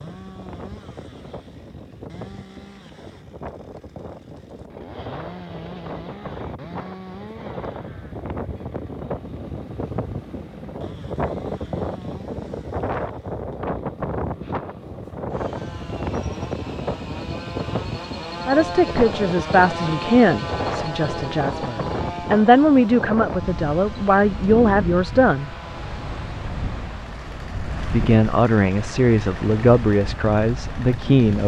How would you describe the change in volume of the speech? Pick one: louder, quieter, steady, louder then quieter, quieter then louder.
steady.